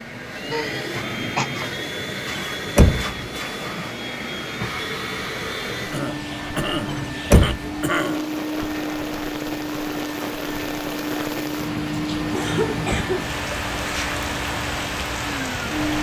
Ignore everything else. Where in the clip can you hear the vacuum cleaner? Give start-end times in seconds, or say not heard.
0.0-15.9.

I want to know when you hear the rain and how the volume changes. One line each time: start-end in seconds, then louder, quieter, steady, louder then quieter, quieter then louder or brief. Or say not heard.
0.0-15.9 louder.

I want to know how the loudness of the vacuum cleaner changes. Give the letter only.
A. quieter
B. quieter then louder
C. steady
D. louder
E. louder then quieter
C.